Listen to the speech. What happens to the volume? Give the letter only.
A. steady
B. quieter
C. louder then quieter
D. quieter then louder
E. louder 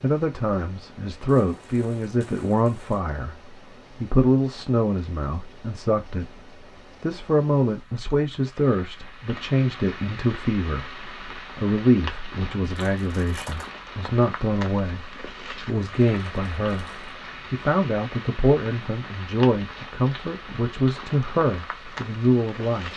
A.